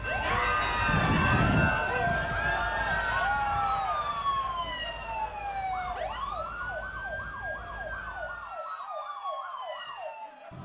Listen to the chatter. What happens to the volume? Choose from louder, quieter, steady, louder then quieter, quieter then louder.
quieter.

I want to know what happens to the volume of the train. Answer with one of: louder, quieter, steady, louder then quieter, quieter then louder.
quieter.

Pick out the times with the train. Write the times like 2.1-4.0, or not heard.
0.0-8.6.